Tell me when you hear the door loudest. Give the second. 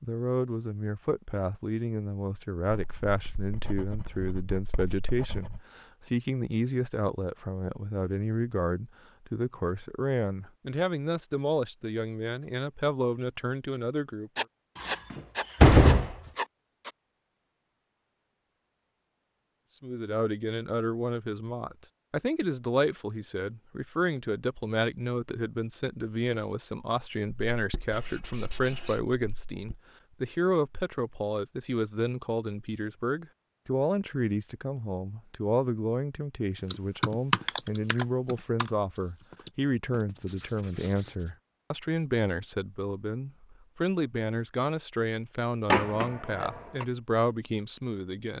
16 s.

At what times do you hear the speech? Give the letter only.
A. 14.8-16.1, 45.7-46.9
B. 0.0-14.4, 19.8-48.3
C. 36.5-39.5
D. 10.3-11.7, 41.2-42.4
B.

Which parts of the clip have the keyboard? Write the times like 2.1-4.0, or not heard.
36.5-39.5.